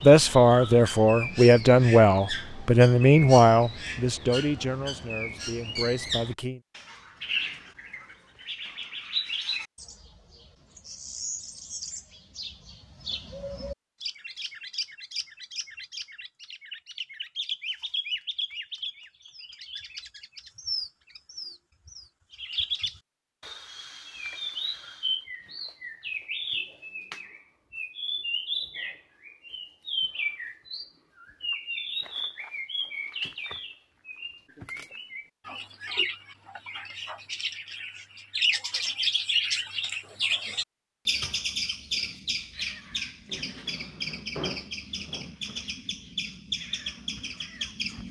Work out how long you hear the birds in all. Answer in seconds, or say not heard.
48 s.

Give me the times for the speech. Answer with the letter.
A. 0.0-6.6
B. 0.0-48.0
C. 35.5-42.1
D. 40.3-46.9
A.